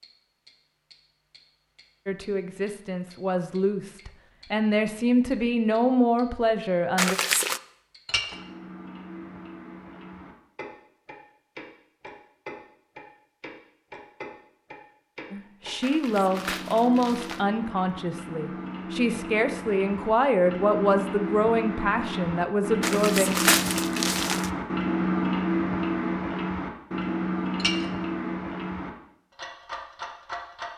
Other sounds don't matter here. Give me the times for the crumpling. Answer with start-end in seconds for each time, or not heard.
7.0-7.6, 15.8-17.4, 22.8-24.5.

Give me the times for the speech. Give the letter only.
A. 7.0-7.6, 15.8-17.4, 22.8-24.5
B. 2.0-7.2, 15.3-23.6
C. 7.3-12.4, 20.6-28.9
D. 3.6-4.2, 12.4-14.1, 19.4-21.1
B.